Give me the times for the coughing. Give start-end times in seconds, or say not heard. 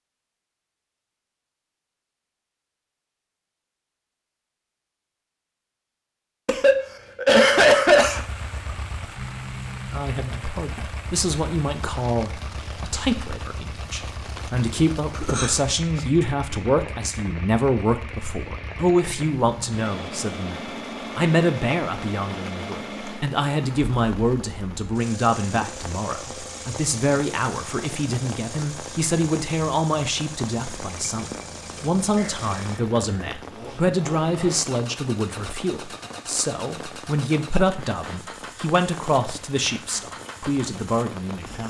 6.5-8.2, 15.2-16.0, 32.1-33.1.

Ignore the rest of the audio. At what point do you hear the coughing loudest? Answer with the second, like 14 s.
8 s.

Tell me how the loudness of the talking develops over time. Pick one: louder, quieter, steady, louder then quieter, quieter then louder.
steady.